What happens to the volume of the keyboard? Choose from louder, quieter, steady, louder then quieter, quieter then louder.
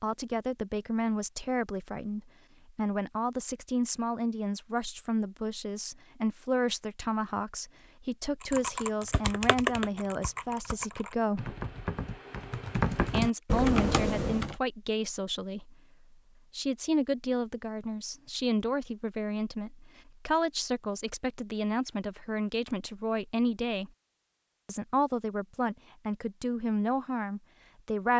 quieter then louder.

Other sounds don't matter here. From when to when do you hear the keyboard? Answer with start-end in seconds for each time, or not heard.
8.5-14.6.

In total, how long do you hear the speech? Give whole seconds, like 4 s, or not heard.
25 s.